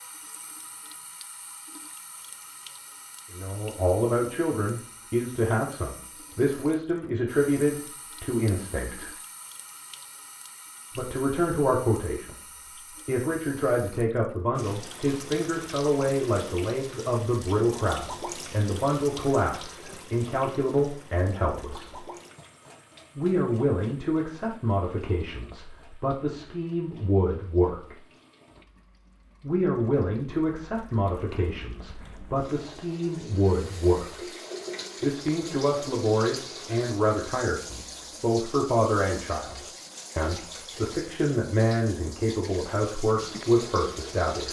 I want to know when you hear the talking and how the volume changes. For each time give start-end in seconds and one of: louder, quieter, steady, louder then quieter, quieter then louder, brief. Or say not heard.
3.3-9.1 steady
10.9-22.0 steady
23.1-27.9 quieter then louder
29.4-34.2 quieter then louder
35.0-44.4 steady.